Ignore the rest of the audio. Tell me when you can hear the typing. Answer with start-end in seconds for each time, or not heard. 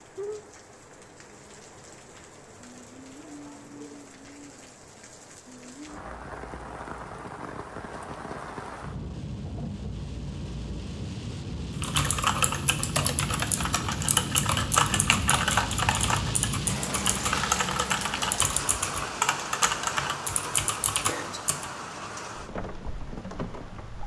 11.8-21.7.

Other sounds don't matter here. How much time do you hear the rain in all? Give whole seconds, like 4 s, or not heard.
24 s.